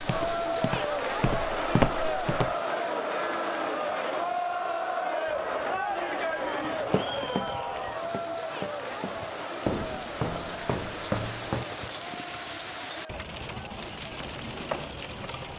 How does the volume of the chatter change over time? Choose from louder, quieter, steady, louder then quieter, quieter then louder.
quieter.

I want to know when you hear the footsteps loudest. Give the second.
2 s.